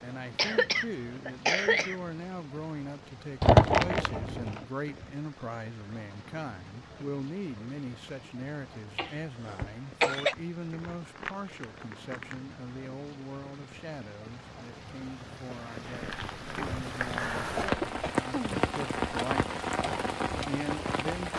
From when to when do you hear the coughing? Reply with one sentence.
The coughing can be heard from 0.3 to 1.9 s, from 8.9 to 10.3 s and from 17.6 to 18.6 s.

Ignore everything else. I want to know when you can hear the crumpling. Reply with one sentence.
The crumpling can be heard from 3.4 to 4.6 s, from 10.1 to 12.4 s and from 15.8 to 17.9 s.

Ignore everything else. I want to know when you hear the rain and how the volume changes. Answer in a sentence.
The rain can be heard from 0.0 to 21.3 s, getting louder.